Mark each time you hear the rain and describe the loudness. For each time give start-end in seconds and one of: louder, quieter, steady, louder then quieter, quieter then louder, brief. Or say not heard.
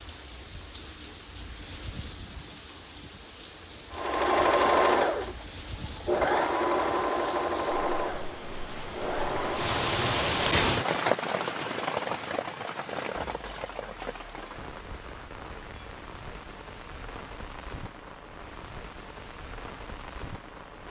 0.0-20.8 louder then quieter.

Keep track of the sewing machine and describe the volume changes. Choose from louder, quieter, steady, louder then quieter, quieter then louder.
quieter.